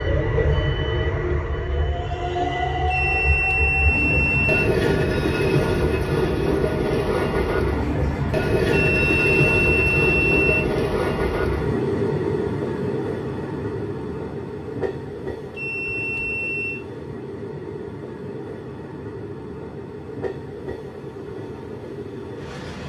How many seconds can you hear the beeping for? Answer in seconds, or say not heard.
5 s.